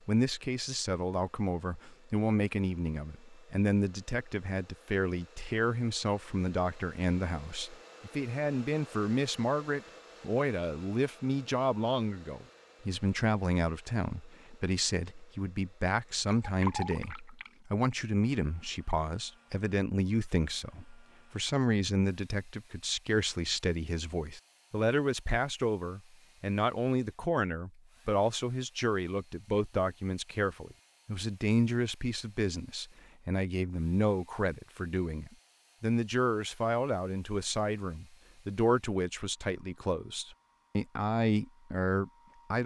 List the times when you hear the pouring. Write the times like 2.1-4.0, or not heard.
16.2-17.5.